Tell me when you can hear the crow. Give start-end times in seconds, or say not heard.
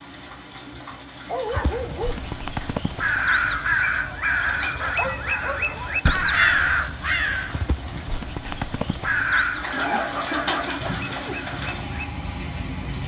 1.5-12.2.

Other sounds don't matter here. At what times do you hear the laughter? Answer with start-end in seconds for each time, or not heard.
9.9-11.4.